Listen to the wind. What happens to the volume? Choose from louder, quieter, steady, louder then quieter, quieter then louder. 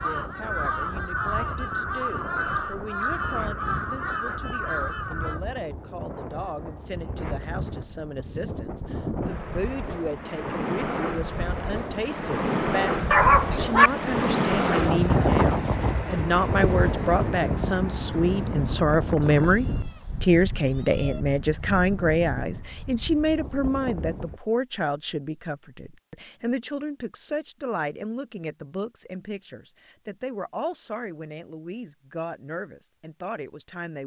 louder then quieter.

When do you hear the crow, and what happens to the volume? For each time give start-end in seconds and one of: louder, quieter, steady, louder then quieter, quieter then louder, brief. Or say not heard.
0.0-5.4 steady.